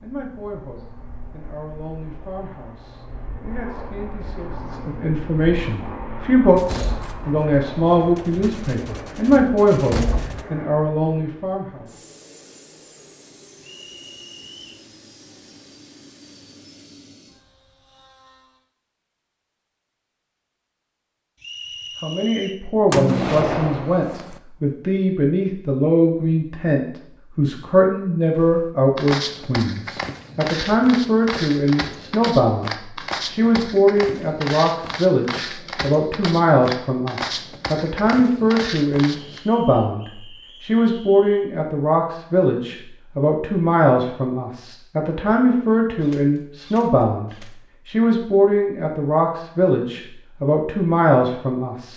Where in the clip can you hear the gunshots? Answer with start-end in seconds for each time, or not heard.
6.5-10.4, 22.9-24.4, 46.0-47.5.